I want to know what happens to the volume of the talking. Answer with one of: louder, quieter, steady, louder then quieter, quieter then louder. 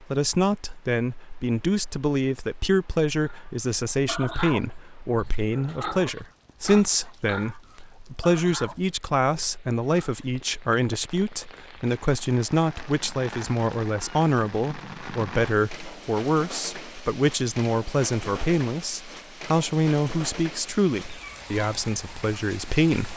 steady.